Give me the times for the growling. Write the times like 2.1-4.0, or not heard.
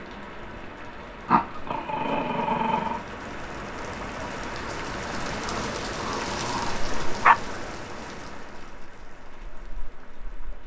1.2-3.0, 5.5-7.3.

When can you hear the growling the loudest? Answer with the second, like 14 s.
7 s.